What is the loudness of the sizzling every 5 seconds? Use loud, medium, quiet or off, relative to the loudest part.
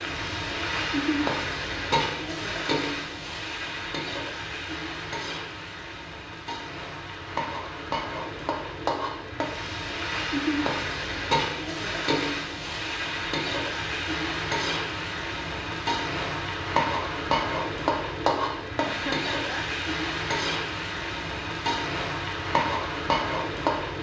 loud, medium, loud, loud, loud.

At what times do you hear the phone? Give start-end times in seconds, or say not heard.
not heard.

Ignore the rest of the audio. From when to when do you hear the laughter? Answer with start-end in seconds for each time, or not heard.
18.9-19.7.